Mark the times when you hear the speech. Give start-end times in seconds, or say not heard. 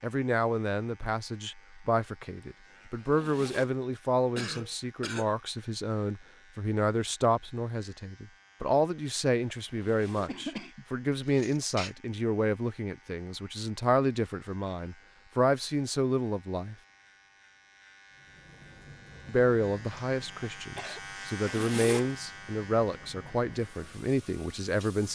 0.0-16.8, 19.2-25.0.